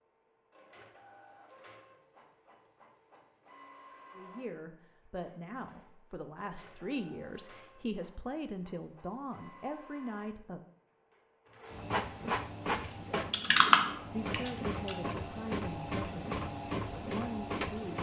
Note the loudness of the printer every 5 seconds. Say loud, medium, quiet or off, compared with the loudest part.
quiet, quiet, loud, loud.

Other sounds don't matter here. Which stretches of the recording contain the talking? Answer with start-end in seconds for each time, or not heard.
4.2-10.6, 14.1-17.9.